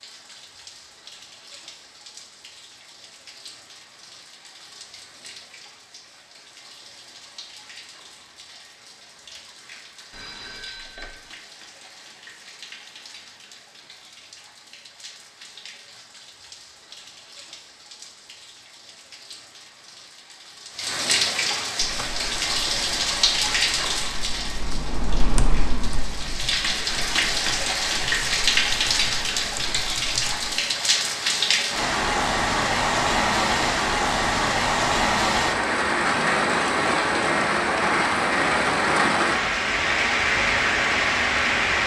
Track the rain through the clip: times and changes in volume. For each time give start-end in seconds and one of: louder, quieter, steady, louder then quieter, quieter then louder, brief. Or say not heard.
0.0-41.8 louder.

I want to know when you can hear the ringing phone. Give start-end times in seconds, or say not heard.
10.1-11.3.